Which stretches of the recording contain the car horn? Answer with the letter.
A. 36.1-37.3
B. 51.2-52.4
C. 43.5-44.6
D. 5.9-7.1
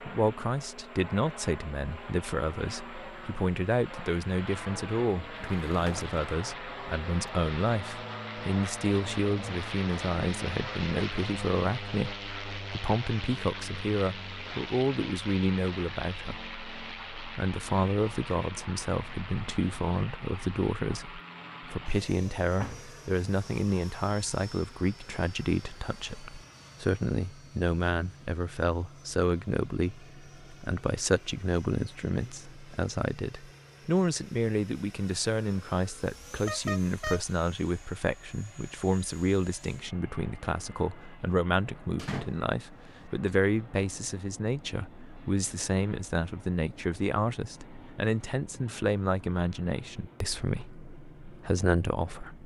A.